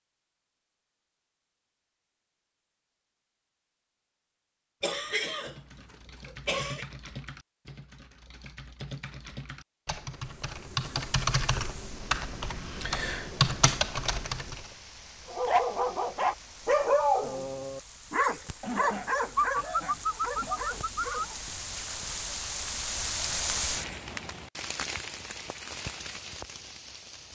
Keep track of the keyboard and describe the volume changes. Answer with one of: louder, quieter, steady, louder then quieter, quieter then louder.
louder.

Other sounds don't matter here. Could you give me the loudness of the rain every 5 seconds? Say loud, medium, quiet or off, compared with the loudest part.
off, off, quiet, quiet, loud, medium.